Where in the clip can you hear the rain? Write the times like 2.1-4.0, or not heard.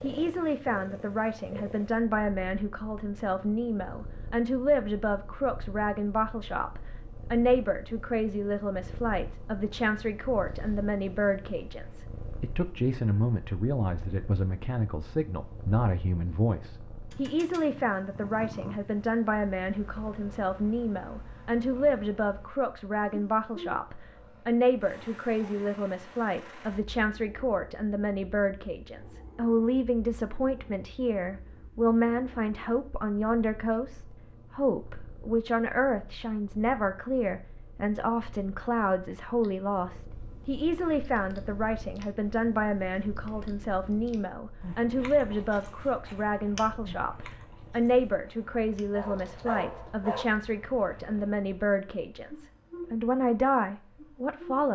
not heard.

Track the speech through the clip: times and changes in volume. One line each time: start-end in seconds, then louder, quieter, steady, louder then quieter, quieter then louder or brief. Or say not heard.
0.0-54.6 steady.